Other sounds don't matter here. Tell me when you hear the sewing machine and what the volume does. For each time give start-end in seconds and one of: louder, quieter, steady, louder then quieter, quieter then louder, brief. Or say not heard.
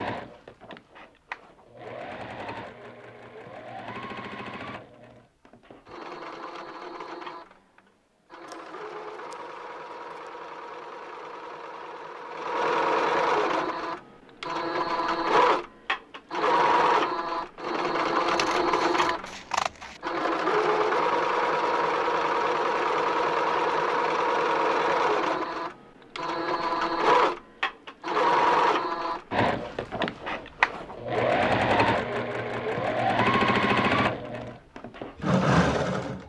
0.0-36.2 louder.